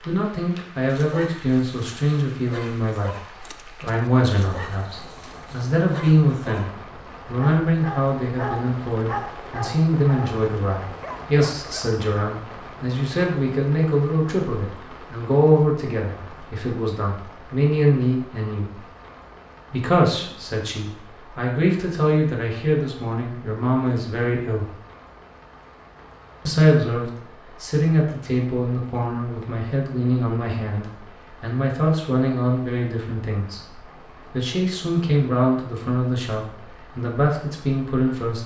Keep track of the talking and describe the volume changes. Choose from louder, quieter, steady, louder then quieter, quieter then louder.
steady.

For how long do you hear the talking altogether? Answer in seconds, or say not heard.
36 s.